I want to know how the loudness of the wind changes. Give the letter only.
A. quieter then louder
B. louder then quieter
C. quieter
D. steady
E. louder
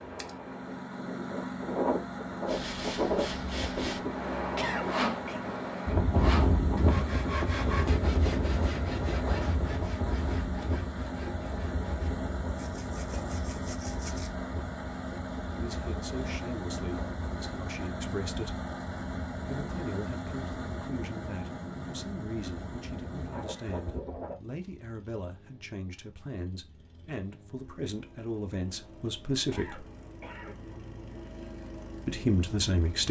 C.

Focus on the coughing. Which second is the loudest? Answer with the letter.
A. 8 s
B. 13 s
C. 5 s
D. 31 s
C.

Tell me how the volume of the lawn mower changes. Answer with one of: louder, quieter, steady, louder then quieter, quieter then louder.
quieter.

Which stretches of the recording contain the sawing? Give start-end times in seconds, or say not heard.
2.5-14.3.